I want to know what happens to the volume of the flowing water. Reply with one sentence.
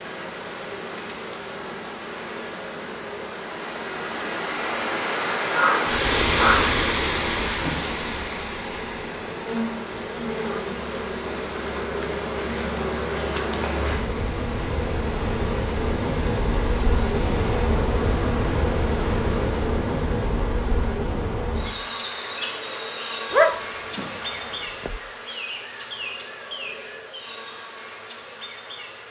The loudness of the flowing water goes up, then down.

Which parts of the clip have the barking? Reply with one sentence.
The barking can be heard from 5.5 to 6.8 s and from 23.3 to 25.0 s.